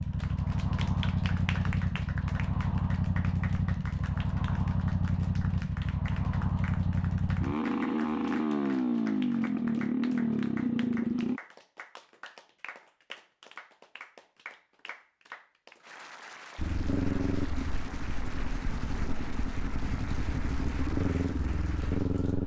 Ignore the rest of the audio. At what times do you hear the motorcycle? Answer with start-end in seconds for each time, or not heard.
0.0-11.4, 16.6-22.4.